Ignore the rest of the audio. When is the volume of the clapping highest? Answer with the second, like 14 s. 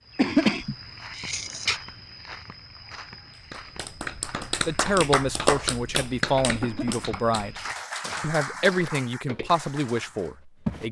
6 s.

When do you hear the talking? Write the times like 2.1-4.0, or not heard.
4.7-7.6, 8.2-10.8.